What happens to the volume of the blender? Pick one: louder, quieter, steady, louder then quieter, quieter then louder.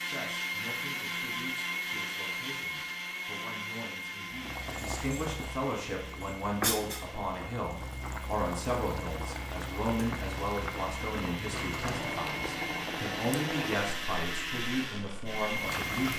quieter then louder.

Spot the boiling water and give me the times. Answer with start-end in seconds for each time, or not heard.
4.3-16.1.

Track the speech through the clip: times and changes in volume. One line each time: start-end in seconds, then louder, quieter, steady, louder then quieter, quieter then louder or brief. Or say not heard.
0.0-16.1 louder.